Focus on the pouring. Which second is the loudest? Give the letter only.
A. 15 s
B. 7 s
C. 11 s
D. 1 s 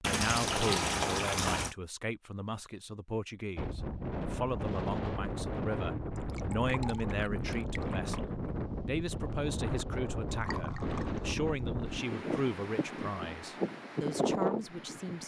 D.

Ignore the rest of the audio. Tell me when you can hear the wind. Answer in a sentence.
You can hear the wind from 3.5 to 15.2 s.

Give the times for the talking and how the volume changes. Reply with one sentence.
You can hear the talking from 0.0 to 15.2 s, at a steady volume.